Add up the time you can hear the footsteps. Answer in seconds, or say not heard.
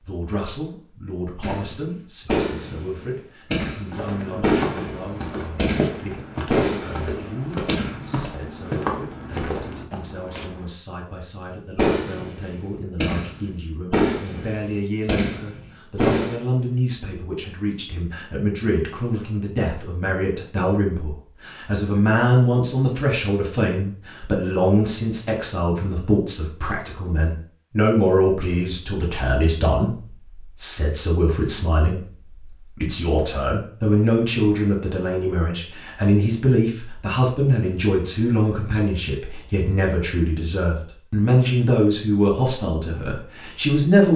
7 s.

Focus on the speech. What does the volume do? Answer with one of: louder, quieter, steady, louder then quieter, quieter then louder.
louder.